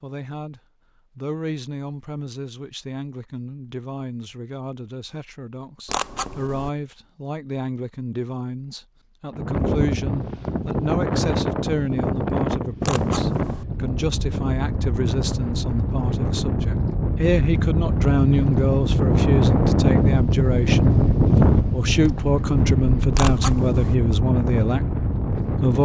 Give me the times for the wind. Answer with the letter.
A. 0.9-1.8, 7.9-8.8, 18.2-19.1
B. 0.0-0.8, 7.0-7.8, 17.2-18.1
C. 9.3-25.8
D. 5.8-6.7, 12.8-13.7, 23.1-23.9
C.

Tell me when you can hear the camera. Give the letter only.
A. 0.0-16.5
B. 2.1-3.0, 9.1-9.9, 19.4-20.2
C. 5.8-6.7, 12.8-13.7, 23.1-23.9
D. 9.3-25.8
C.